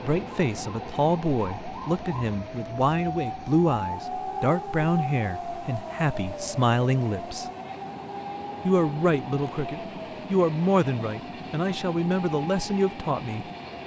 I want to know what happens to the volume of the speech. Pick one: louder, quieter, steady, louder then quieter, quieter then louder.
steady.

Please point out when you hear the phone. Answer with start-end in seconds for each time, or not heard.
not heard.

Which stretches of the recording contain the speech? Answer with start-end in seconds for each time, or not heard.
0.0-7.5, 8.7-13.4.